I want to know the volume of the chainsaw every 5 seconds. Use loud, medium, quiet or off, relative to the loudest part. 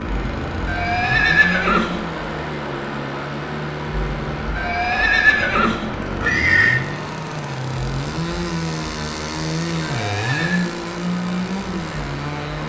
medium, loud, loud.